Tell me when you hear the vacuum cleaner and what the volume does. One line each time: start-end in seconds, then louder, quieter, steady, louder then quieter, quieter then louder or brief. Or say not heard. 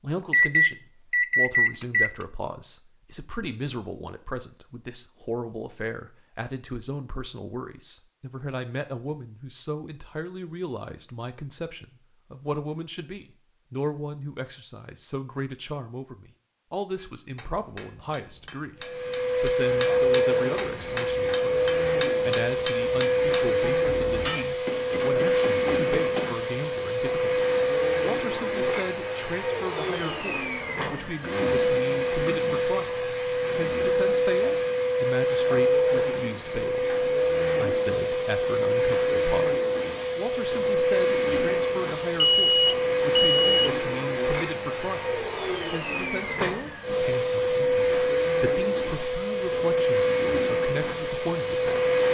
18.8-52.0 steady.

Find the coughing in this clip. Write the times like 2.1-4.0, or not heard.
not heard.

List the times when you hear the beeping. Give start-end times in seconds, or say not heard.
0.3-2.1, 42.2-43.7.